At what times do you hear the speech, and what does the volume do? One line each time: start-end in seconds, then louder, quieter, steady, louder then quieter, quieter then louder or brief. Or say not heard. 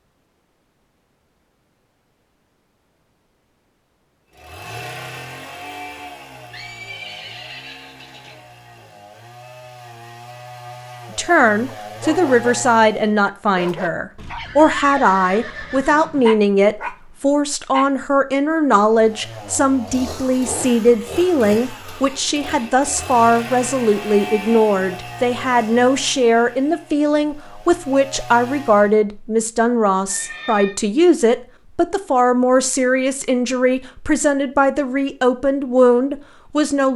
11.2-36.9 steady.